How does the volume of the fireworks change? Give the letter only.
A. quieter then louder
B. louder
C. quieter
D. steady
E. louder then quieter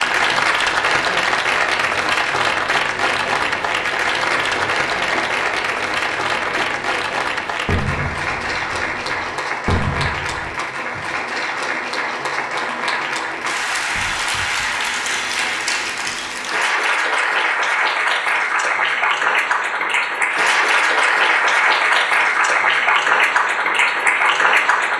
D.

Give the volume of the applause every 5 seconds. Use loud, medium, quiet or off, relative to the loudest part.
loud, medium, medium, loud, loud.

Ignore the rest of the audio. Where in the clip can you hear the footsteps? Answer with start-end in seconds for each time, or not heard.
not heard.